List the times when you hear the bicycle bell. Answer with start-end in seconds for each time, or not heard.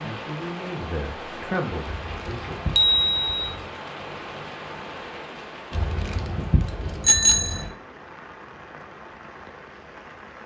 2.8-3.3, 7.0-7.7.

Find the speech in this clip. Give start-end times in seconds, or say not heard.
0.0-2.6.